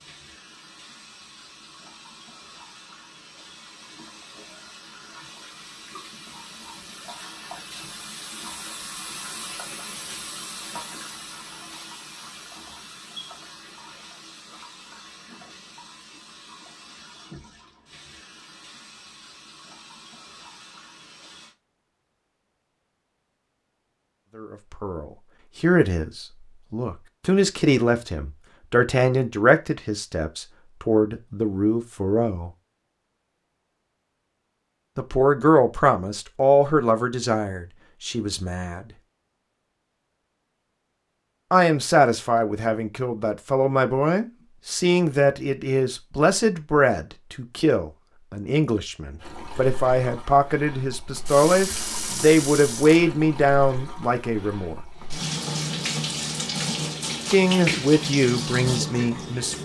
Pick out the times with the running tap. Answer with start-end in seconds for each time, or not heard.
0.0-21.6, 49.2-59.6.